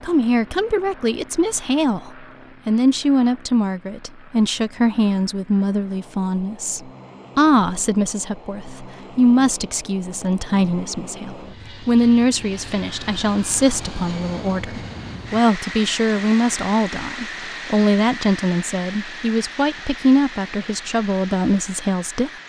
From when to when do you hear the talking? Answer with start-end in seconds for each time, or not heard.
0.0-22.3.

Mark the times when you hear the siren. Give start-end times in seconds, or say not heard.
not heard.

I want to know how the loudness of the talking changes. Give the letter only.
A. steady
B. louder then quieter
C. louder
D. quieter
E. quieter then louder
A.